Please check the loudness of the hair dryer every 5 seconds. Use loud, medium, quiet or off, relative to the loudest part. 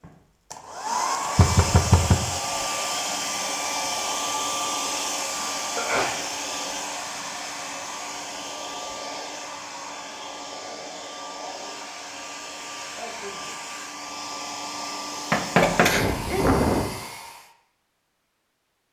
loud, medium, medium, loud.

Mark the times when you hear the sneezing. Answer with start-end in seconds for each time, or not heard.
5.5-6.2, 15.6-16.4.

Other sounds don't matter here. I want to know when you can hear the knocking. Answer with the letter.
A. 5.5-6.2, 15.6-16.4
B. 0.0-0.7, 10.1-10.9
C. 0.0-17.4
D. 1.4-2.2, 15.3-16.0
D.